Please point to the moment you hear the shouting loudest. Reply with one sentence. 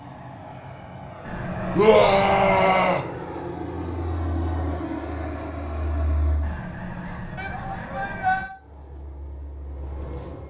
The loudest moment of the shouting is at 2 seconds.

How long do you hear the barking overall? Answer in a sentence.
The barking can't be heard in this clip.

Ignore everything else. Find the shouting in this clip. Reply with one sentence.
The shouting can be heard from 1.8 to 3.0 s and from 7.3 to 8.5 s.